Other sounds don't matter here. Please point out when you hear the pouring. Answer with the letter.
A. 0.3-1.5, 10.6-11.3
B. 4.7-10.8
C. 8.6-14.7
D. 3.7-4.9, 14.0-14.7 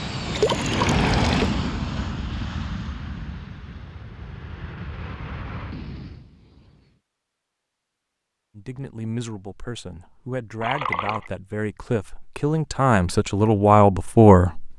A.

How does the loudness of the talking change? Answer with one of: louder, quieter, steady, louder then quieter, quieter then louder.
louder.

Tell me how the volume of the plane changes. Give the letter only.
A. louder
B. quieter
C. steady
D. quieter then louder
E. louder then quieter
B.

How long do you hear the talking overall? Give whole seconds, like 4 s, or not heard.
6 s.